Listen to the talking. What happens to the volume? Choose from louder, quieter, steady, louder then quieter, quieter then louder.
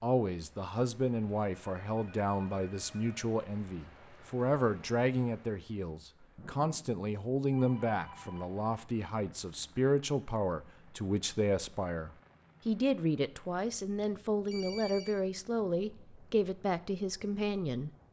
steady.